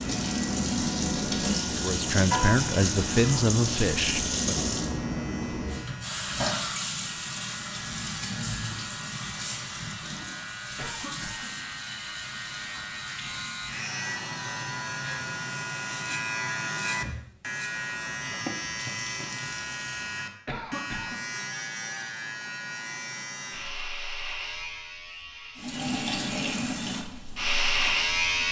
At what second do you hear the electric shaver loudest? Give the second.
28 s.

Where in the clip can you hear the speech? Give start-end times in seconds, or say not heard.
1.7-4.7.